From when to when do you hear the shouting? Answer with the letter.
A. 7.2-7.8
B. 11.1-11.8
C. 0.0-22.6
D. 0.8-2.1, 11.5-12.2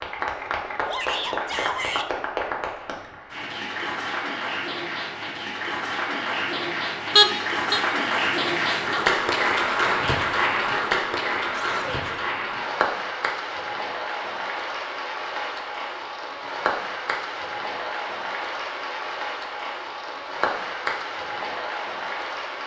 D.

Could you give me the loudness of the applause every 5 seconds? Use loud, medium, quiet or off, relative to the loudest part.
medium, loud, loud, medium, medium.